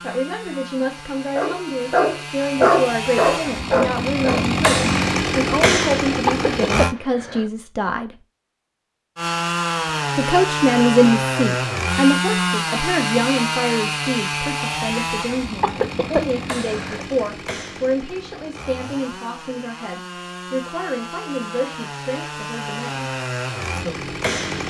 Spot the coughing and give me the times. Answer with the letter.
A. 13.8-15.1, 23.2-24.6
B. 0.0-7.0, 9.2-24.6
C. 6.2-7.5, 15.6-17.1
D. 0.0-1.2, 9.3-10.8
C.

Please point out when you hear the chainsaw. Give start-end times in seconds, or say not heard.
0.0-7.0, 9.2-24.6.